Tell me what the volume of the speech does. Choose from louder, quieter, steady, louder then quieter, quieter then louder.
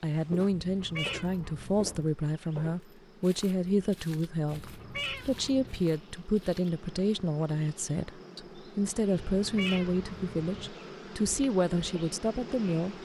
steady.